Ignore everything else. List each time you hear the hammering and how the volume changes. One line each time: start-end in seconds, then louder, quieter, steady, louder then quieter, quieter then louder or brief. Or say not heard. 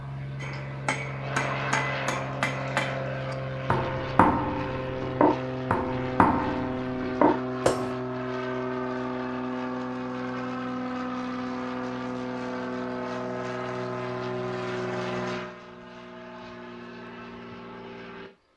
0.4-8.0 louder.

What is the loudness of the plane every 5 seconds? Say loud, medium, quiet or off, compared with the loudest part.
loud, loud, loud, medium.